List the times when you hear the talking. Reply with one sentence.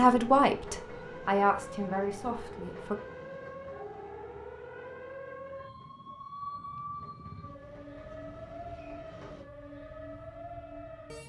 The talking can be heard from 0.0 to 3.0 s.